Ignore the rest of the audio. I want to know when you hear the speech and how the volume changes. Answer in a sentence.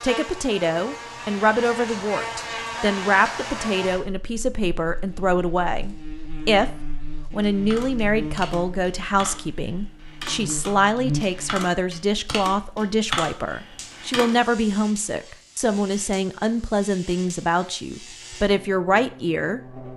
The speech can be heard from 0.0 to 19.8 s, at a steady volume.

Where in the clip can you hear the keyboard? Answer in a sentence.
You can hear the keyboard from 7.4 to 14.4 s.